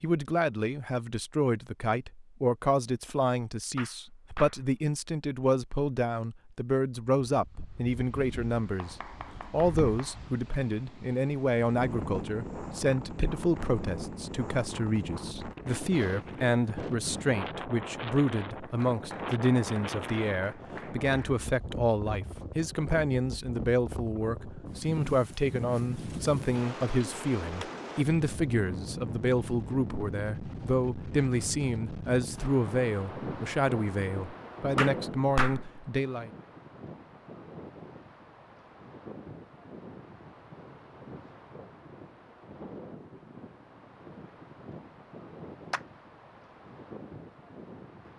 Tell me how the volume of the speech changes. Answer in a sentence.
The loudness of the speech stays about the same.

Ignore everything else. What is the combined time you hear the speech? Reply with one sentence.
The speech can be heard for 36 seconds in total.